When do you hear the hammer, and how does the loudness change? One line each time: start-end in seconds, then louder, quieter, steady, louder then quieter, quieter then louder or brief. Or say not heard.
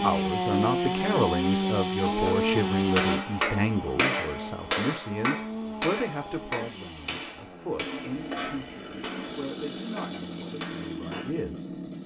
2.0-11.3 quieter.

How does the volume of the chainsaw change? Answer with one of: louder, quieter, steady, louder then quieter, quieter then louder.
quieter.